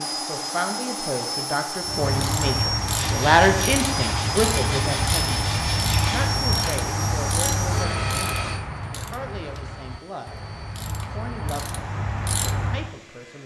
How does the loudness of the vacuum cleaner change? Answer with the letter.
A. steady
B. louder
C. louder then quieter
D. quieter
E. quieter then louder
D.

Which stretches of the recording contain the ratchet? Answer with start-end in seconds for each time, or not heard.
1.8-12.9.